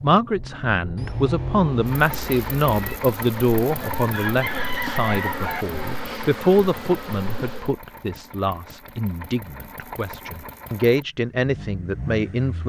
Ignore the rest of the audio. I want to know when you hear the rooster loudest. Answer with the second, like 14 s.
5 s.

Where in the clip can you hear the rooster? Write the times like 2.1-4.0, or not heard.
3.7-5.7.